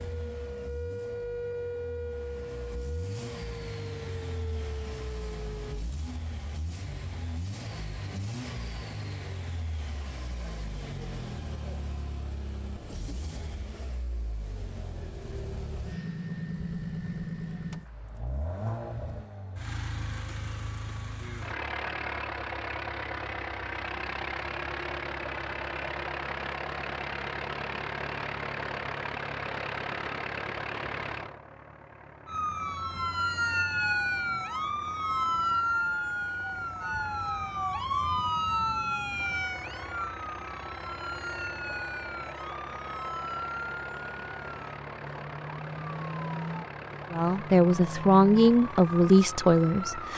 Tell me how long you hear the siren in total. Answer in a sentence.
The siren can be heard for 24 seconds in total.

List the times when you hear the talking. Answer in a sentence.
You can hear the talking from 47.1 to 50.1 s.